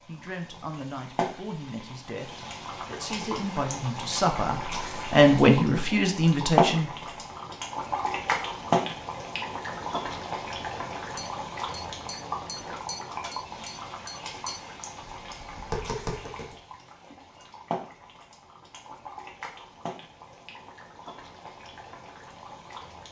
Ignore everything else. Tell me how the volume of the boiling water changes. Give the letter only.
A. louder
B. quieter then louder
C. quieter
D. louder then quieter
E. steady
D.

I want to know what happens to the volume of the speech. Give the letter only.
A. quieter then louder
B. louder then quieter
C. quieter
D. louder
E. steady
D.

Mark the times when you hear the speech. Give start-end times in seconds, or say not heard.
0.1-7.0.